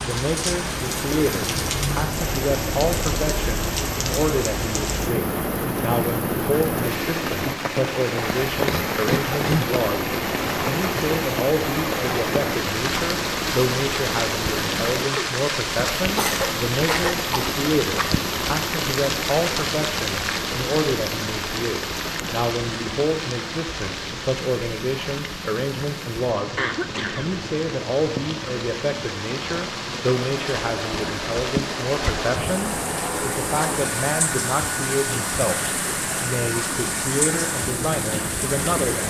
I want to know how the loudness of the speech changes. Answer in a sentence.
The volume of the speech stays about the same.